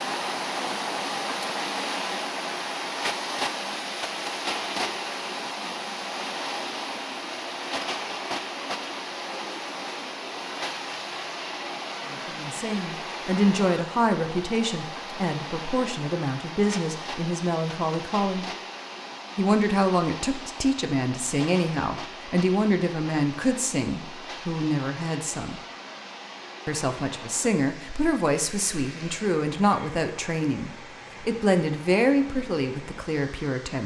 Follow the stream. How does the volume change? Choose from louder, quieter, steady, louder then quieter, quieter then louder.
quieter.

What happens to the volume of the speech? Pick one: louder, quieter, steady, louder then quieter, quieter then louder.
steady.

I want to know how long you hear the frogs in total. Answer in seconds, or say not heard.
not heard.